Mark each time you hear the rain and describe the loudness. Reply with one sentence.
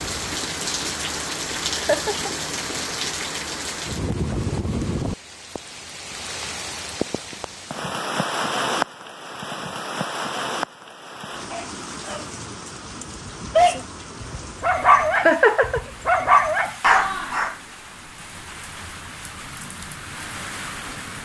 The rain can be heard from 0.0 to 21.2 s, getting quieter.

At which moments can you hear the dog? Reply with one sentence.
You can hear the dog from 11.5 to 17.6 s.